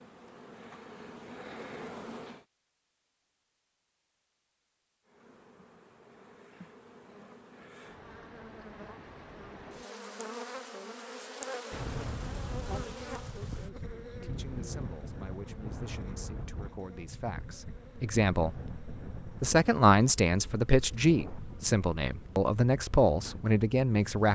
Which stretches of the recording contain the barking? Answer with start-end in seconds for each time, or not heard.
not heard.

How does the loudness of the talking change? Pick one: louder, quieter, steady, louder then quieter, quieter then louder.
louder.